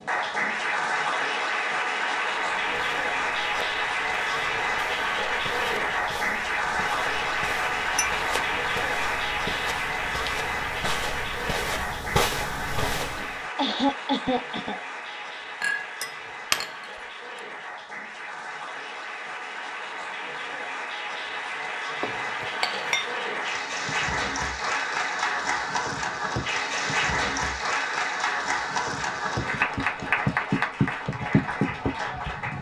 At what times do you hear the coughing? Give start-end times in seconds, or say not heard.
13.1-15.2.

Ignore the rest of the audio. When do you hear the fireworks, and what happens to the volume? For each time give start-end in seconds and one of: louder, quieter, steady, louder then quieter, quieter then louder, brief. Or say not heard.
not heard.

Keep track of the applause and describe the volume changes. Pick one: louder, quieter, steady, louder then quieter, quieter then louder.
quieter then louder.